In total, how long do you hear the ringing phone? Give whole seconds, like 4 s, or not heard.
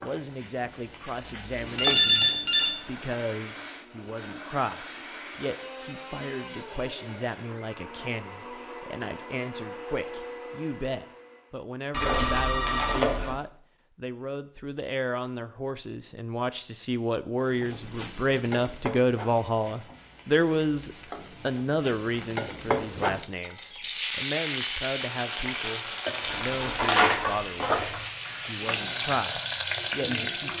4 s.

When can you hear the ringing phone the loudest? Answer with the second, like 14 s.
2 s.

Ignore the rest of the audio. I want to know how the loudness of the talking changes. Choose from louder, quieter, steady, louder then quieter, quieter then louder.
louder then quieter.